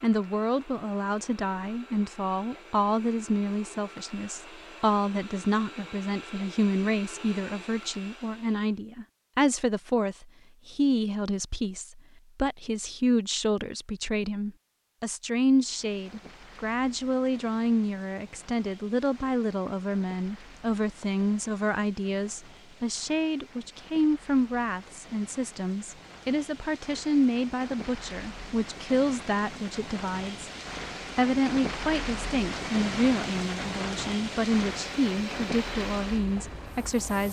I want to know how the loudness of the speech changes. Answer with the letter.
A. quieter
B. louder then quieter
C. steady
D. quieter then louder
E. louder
C.